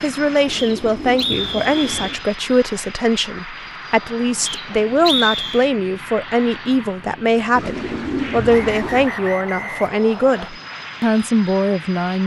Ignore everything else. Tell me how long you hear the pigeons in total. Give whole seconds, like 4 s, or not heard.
3 s.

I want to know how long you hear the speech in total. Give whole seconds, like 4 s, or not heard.
12 s.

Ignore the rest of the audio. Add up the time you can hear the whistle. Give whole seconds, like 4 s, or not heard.
5 s.